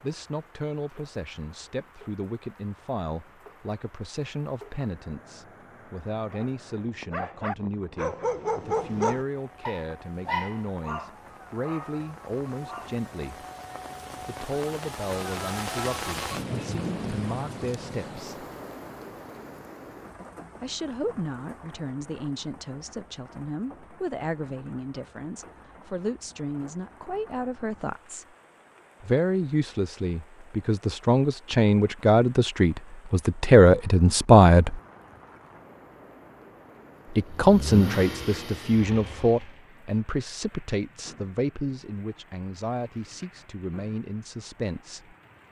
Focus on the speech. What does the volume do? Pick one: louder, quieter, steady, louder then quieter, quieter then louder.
louder then quieter.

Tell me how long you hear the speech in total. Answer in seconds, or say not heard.
39 s.